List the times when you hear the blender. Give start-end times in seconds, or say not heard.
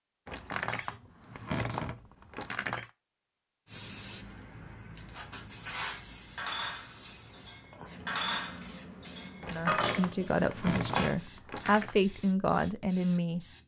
not heard.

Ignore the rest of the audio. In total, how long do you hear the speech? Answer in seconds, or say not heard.
4 s.